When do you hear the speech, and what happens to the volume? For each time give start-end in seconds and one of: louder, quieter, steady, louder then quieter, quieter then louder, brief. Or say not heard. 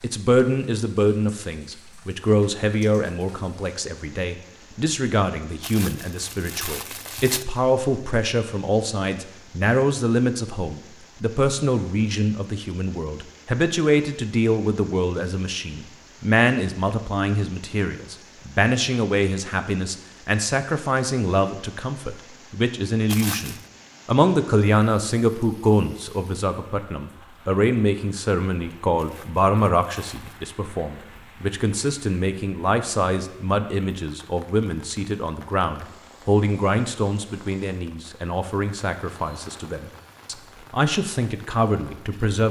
0.0-42.4 steady.